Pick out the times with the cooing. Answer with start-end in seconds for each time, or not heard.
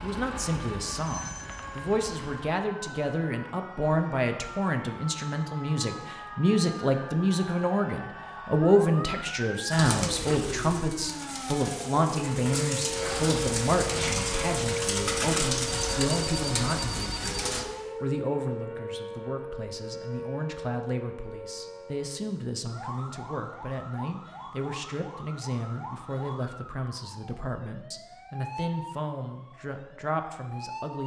9.7-17.6.